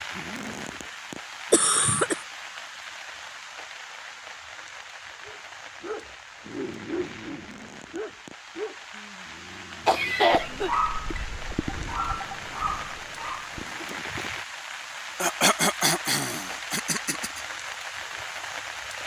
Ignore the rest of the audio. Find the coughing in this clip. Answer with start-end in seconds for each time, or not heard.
1.5-2.2, 9.8-10.7, 15.2-17.4.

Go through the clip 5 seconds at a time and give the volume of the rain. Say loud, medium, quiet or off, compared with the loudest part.
loud, medium, loud, loud.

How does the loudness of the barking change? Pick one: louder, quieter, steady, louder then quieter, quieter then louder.
quieter then louder.